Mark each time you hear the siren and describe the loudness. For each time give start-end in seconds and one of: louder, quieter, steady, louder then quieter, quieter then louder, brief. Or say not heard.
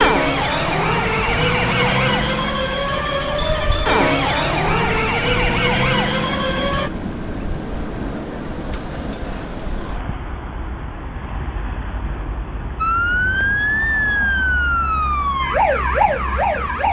0.0-6.9 steady
12.8-16.8 steady.